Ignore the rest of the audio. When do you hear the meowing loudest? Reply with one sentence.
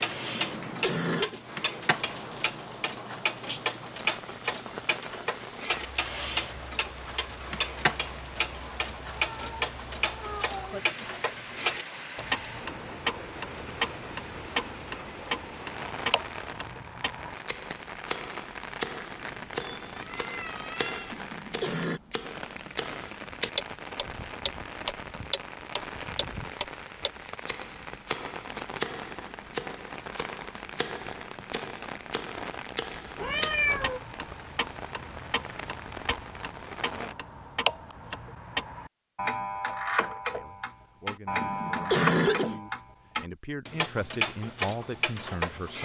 The loudest moment of the meowing is at 34 seconds.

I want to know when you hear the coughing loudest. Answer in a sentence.
The loudest moment of the coughing is at 42 seconds.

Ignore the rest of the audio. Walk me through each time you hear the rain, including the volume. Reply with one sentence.
The rain can be heard from 0.0 to 37.1 s, at a steady volume.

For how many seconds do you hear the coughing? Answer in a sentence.
You can hear the coughing for 3 seconds altogether.